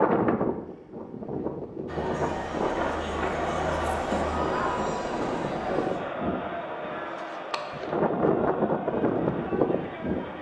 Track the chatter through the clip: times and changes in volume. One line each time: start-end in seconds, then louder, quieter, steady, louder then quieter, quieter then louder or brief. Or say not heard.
1.9-10.3 quieter.